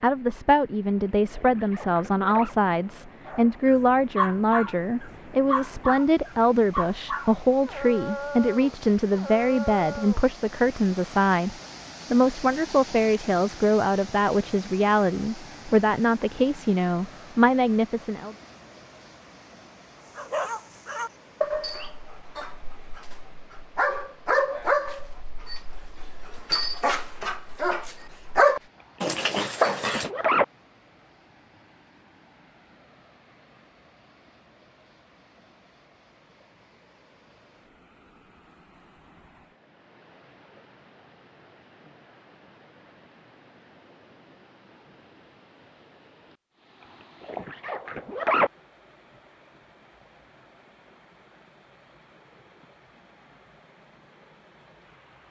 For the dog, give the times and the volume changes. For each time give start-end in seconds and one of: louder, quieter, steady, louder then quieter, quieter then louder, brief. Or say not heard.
3.2-10.2 quieter
20.1-30.1 louder.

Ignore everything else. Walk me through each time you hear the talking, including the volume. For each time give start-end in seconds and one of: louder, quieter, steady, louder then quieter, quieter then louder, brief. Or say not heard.
0.0-18.4 steady.